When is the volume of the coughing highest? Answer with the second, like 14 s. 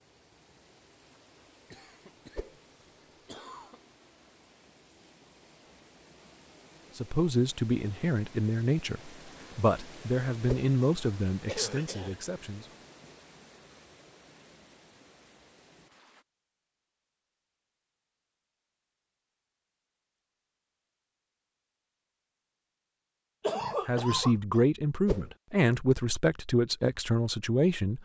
24 s.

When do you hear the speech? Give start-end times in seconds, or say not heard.
7.0-12.7, 23.9-28.0.